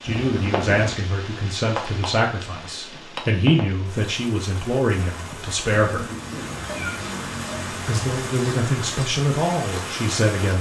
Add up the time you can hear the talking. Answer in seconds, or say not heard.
9 s.